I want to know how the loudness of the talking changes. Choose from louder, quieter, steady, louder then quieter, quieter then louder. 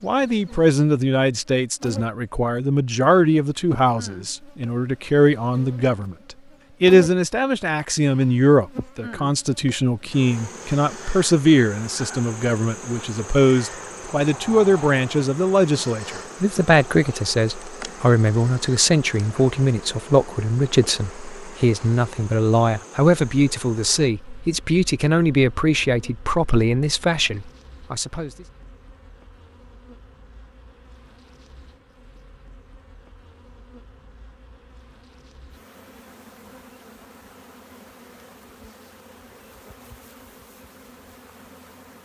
steady.